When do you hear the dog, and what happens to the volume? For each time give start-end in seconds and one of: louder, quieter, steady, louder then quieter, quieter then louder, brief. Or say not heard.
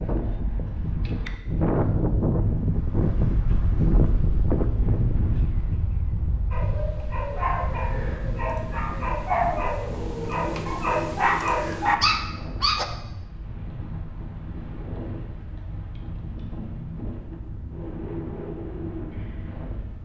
6.5-12.8 louder.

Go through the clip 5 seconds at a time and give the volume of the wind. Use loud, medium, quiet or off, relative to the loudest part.
loud, medium, medium, medium.